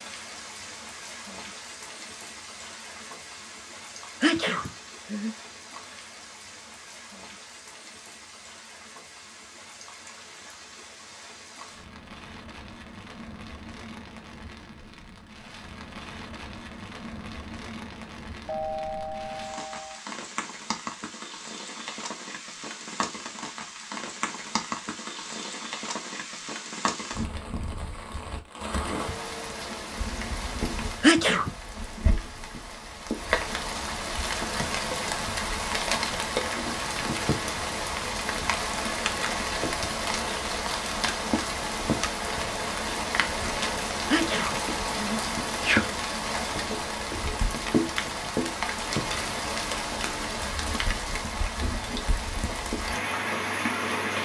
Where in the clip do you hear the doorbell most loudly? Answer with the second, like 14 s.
19 s.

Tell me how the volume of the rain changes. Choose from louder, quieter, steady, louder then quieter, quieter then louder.
louder.